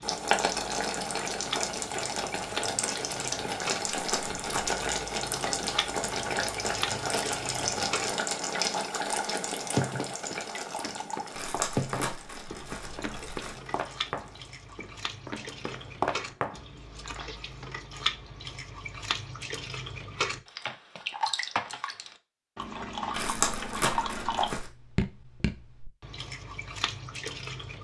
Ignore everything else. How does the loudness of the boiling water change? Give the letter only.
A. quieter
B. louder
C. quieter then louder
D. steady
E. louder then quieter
A.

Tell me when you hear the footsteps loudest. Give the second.
16 s.